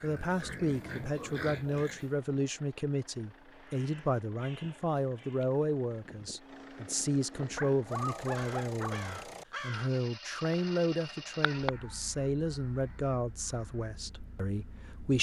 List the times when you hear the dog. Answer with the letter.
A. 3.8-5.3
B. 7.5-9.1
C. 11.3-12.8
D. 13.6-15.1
B.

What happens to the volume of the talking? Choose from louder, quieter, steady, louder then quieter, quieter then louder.
steady.